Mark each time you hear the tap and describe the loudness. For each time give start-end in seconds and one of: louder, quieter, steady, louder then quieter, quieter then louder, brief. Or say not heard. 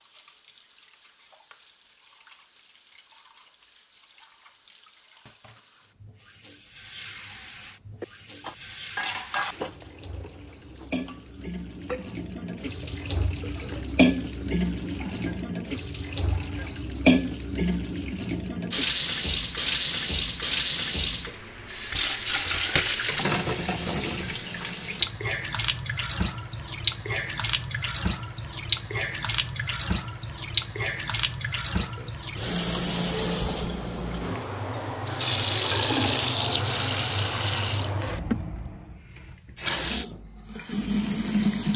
0.0-41.7 louder.